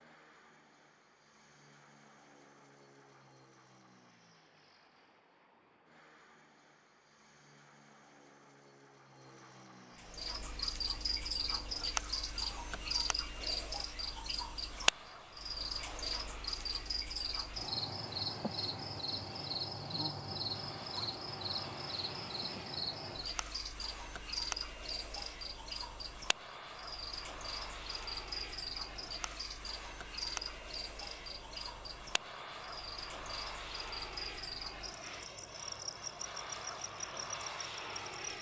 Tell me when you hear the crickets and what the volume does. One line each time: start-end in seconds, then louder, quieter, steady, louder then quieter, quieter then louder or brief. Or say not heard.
9.9-38.3 quieter.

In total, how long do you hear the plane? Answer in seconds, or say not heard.
38 s.